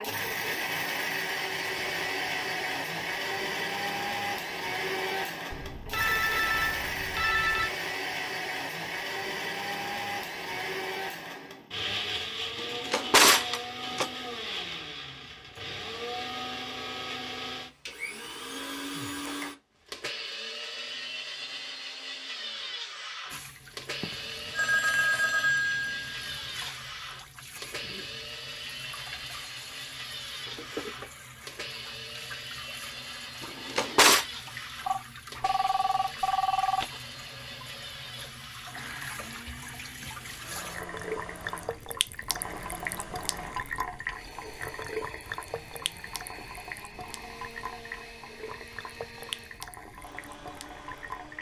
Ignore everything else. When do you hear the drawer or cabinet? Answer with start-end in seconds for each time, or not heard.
12.6-14.1, 33.4-34.2.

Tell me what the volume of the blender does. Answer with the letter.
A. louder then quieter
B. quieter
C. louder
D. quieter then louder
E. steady
B.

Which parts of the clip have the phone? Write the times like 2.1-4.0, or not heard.
5.5-7.7, 24.0-26.6, 34.9-36.9.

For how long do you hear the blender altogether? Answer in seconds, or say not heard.
51 s.